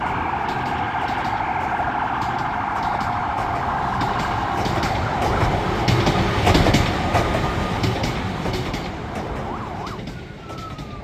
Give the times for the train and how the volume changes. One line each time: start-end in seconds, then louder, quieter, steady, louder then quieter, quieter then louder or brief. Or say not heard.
0.0-10.9 louder then quieter.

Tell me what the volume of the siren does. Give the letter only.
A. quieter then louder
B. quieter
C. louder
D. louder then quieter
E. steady
B.